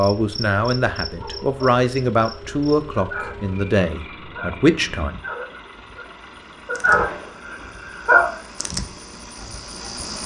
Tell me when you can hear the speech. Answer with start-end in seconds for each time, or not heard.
0.0-5.1.